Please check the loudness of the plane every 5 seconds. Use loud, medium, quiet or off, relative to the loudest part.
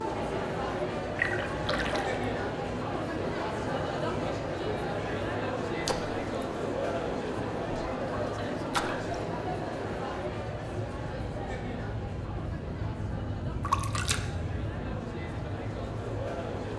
loud, medium, loud, loud.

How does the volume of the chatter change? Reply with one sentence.
The volume of the chatter goes down.